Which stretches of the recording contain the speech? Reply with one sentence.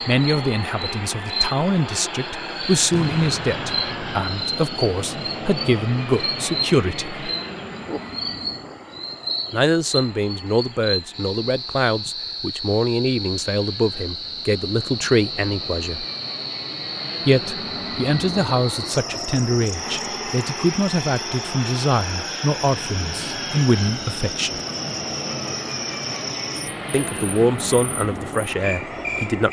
The speech can be heard from 0.1 to 7.2 s, from 9.5 to 16.1 s, from 17.2 to 24.6 s and from 26.9 to 29.4 s.